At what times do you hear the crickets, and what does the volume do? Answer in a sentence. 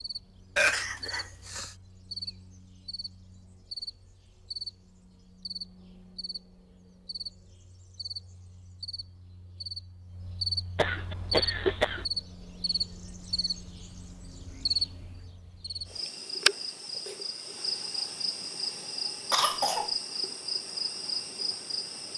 The crickets can be heard from 0.0 to 22.1 s, getting louder.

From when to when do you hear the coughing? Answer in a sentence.
The coughing can be heard from 0.6 to 1.8 s, from 10.8 to 12.1 s and from 19.3 to 19.9 s.